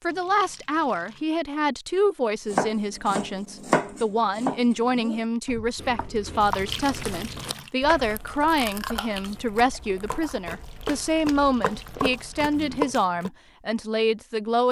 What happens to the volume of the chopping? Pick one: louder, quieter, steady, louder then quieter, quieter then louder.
quieter then louder.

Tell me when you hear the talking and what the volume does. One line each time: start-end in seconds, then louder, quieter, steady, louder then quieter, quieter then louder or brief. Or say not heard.
0.0-14.6 steady.